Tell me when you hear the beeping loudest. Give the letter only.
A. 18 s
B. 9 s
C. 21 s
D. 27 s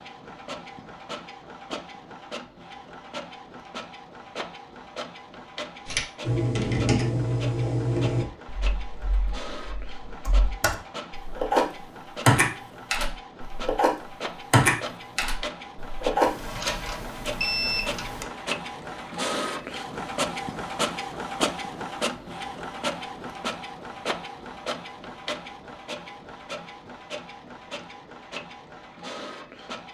A.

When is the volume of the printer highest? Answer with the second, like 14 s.
21 s.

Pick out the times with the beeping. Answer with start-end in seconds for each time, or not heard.
16.2-18.2.